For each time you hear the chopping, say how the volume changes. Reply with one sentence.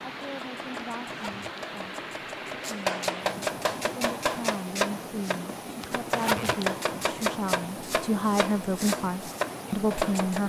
The chopping can be heard from 0.2 to 10.4 s, getting louder.